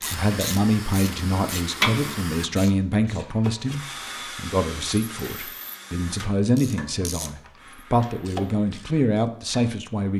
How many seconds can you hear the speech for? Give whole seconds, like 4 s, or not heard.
10 s.